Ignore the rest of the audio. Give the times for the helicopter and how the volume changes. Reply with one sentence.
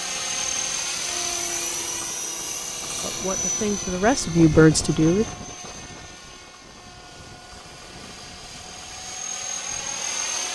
You can hear the helicopter from 0.0 to 10.4 s, getting quieter then louder.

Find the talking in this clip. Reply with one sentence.
The talking can be heard from 3.0 to 5.2 s.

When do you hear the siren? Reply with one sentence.
The siren can't be heard in this clip.